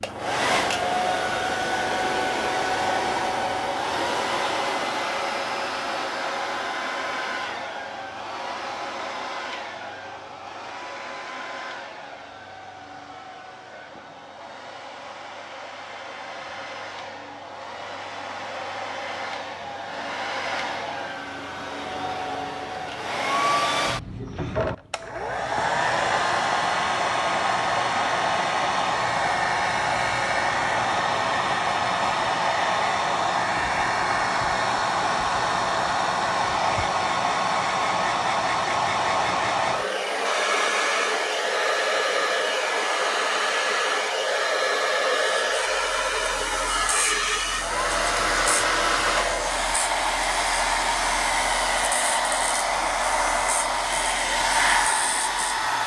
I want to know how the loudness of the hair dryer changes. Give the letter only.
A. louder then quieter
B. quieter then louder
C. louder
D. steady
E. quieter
B.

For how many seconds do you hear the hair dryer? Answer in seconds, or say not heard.
56 s.